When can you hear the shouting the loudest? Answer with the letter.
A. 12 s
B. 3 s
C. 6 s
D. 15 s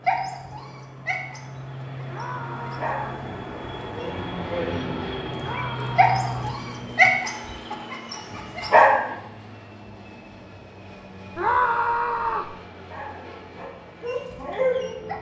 A.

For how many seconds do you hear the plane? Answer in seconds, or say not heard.
15 s.